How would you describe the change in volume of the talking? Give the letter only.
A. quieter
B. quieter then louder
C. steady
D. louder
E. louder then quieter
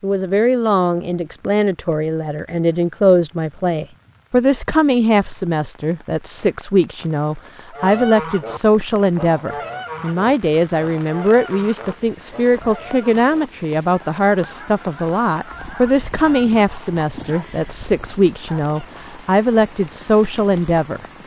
C.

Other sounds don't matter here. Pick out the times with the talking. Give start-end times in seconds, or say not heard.
0.0-21.0.